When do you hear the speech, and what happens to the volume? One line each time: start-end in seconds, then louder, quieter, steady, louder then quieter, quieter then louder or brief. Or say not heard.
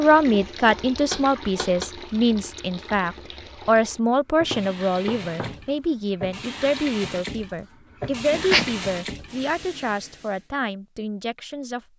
0.0-11.8 quieter.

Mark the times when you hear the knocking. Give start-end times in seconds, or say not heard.
1.1-1.9, 4.5-5.7, 8.3-8.8.